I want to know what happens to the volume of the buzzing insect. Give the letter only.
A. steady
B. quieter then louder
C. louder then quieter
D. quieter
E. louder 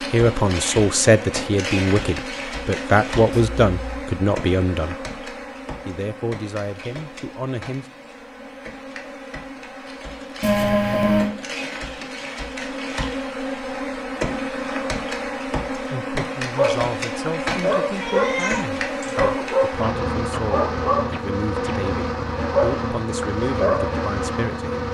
B.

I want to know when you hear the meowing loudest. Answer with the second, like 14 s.
11 s.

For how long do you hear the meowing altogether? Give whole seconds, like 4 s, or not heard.
3 s.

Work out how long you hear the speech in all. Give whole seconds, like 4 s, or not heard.
16 s.